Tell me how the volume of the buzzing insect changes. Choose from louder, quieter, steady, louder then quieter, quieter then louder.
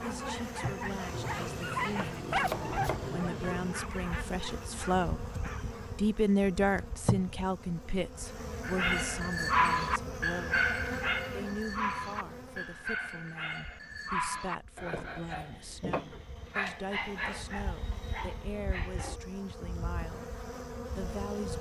quieter then louder.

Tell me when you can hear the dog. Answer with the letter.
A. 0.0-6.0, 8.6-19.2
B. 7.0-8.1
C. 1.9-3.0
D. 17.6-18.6
A.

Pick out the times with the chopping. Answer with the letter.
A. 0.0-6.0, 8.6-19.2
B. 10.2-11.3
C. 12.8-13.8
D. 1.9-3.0
D.